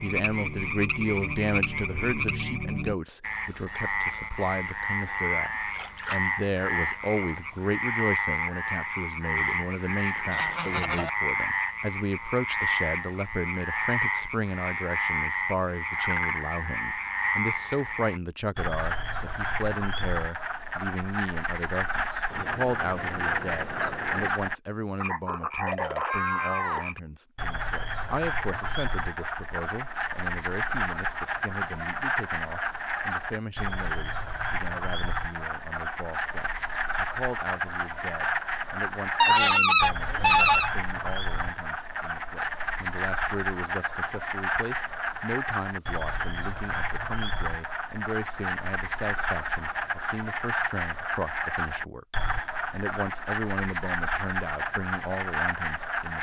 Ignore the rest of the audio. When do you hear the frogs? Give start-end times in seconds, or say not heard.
0.0-56.1.